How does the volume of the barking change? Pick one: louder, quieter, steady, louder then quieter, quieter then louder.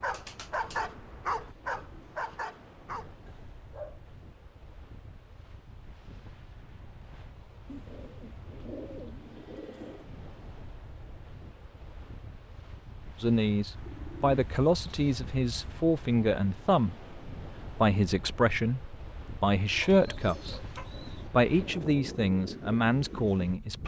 quieter.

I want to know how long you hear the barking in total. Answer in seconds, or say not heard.
4 s.